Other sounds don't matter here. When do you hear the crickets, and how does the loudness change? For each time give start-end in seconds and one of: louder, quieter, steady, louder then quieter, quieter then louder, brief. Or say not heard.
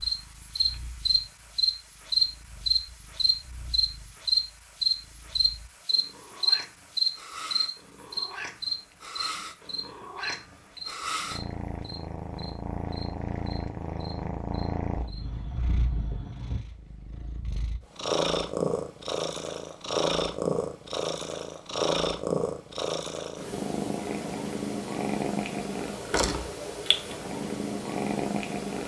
0.0-16.6 quieter.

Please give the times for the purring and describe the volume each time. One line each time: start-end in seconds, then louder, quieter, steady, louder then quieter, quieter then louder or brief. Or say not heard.
0.0-28.8 louder.